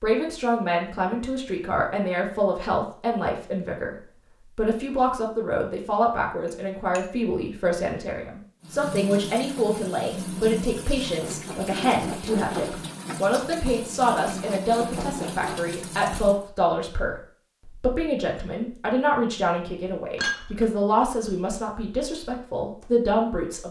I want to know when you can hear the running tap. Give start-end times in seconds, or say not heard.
8.6-16.5.